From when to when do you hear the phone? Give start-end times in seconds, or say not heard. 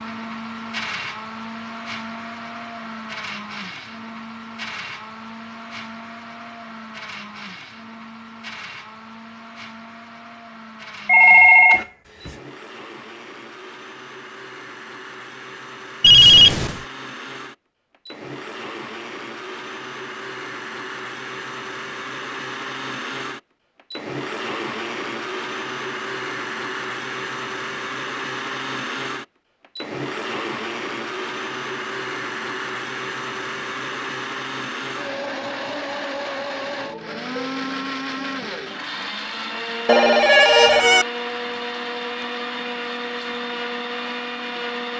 11.1-12.3, 16.0-16.8, 39.9-41.0.